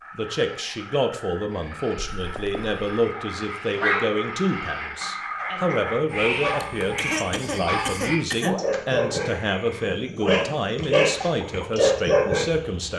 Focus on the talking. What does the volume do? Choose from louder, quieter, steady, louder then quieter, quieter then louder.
steady.